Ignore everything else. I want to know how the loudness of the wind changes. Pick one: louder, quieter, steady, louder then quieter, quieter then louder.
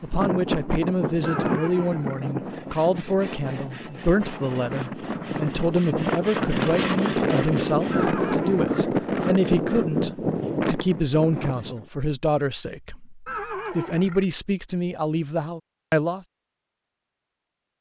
quieter then louder.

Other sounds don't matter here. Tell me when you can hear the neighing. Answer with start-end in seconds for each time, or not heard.
1.2-2.2, 7.9-8.9, 13.2-14.2.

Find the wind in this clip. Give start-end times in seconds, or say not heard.
0.0-11.8.